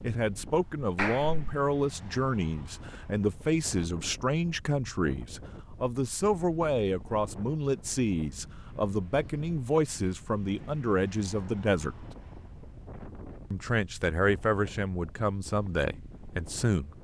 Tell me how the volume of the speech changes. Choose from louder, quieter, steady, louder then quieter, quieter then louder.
steady.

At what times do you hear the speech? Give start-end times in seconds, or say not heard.
0.0-12.1, 13.5-16.9.